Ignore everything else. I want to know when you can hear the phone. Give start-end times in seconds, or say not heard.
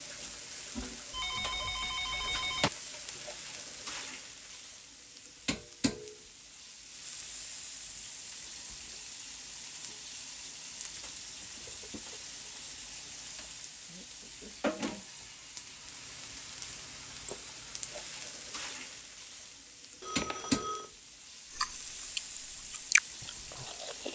1.1-2.7, 20.0-20.9.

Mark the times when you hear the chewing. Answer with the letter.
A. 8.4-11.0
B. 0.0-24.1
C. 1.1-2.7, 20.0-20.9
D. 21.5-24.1
D.